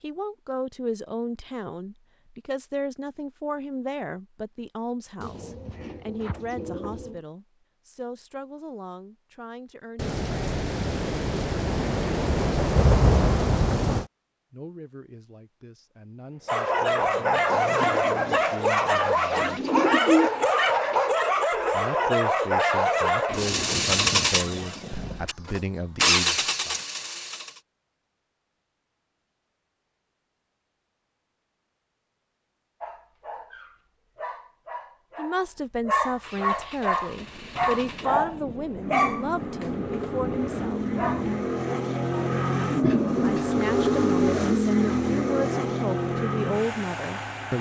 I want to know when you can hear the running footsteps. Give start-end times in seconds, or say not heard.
not heard.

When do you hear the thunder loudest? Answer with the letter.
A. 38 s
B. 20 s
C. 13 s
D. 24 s
C.